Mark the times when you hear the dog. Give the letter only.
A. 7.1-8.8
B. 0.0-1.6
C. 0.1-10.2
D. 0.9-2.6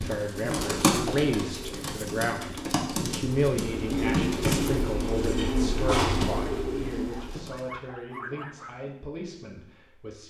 A.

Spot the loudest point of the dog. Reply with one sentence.
The loudest moment of the dog is at 8 seconds.